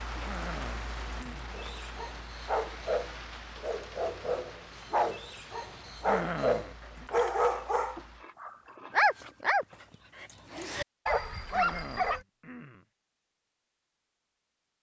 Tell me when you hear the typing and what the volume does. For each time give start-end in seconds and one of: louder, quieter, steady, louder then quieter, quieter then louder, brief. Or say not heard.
not heard.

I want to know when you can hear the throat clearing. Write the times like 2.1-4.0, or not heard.
0.2-1.6, 6.0-7.0, 11.5-12.8.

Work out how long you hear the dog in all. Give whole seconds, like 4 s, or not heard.
11 s.